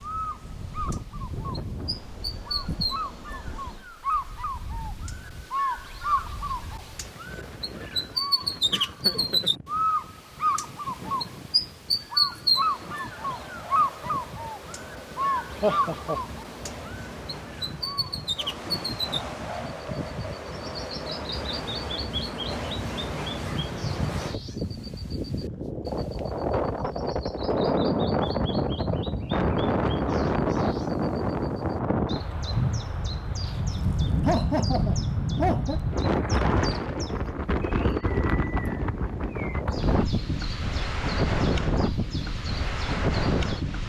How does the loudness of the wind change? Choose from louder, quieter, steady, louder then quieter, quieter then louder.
louder.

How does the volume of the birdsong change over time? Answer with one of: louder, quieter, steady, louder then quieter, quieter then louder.
louder then quieter.